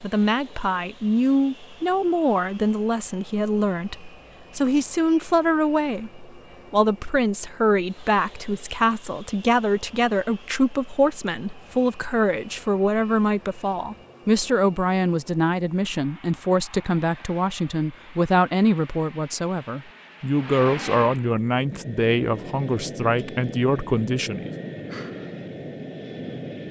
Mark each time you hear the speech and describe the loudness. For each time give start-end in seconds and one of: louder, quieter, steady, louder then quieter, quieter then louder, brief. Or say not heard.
0.0-24.5 steady.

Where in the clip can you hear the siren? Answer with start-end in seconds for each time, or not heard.
not heard.